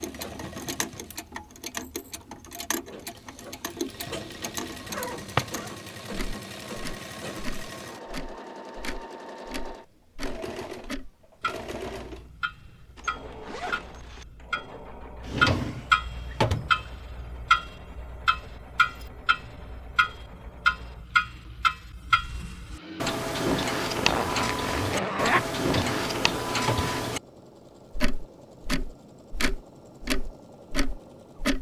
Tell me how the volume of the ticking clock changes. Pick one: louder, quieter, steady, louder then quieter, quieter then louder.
louder.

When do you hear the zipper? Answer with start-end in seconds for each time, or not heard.
4.8-5.8, 12.9-14.2, 23.9-25.4.